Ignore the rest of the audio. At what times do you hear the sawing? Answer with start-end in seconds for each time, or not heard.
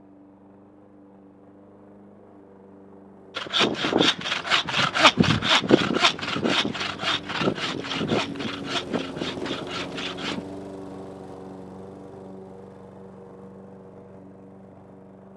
3.4-10.4.